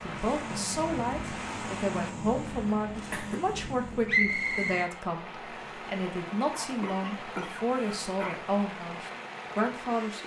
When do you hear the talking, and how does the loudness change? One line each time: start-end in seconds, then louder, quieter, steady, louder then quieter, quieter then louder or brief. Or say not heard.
0.0-10.2 steady.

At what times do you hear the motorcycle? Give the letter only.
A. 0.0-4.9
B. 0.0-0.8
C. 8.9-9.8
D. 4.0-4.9
A.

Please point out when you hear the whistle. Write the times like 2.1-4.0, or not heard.
4.0-4.9.